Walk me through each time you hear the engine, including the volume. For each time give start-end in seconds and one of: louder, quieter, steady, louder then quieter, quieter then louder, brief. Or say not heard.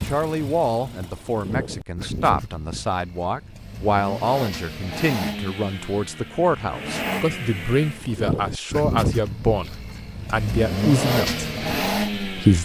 0.0-12.6 louder.